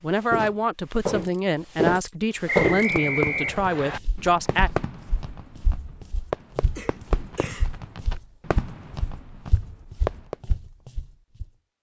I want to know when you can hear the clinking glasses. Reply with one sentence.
The clinking glasses can't be heard in this clip.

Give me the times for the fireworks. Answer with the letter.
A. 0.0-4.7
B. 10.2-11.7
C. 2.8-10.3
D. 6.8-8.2
C.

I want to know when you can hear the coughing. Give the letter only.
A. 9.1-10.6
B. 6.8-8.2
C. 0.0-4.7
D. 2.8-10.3
B.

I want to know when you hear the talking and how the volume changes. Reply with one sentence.
The talking can be heard from 0.0 to 4.7 s, at a steady volume.